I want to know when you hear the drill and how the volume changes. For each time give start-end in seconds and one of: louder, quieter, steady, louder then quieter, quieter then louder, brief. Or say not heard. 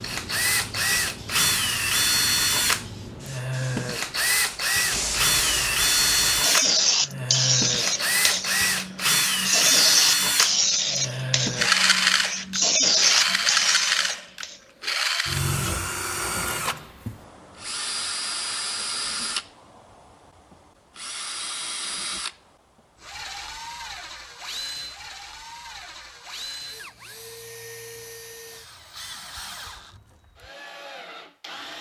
0.0-31.7 quieter.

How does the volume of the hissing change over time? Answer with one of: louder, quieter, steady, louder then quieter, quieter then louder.
louder.